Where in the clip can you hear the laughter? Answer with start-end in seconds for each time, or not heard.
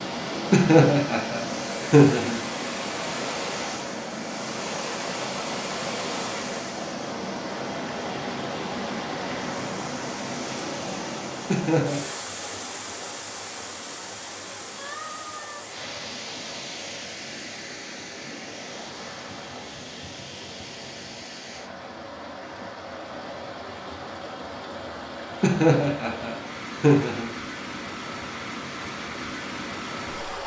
0.5-2.4, 11.4-12.1, 25.4-27.3.